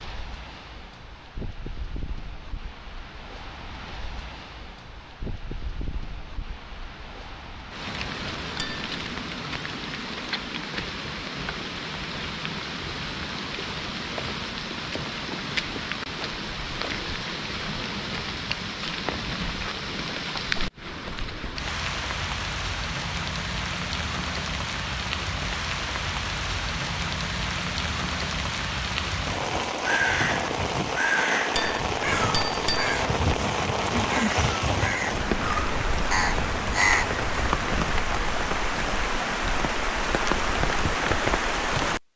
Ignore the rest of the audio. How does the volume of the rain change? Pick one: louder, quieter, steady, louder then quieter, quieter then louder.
louder.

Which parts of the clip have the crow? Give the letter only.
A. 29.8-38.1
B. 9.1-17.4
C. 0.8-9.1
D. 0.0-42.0
A.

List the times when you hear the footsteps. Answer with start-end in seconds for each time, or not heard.
not heard.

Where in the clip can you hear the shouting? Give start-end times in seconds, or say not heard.
not heard.